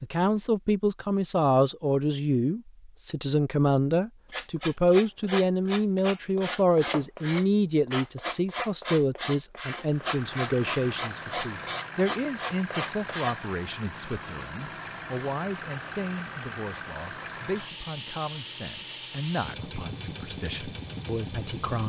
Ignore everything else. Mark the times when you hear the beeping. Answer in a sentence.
The beeping can't be heard in this clip.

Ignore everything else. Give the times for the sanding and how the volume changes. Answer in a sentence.
The sanding can be heard from 4.3 to 13.4 s, at a steady volume.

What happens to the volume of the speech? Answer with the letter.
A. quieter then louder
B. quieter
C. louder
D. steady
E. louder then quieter
B.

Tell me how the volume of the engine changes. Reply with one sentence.
The loudness of the engine stays about the same.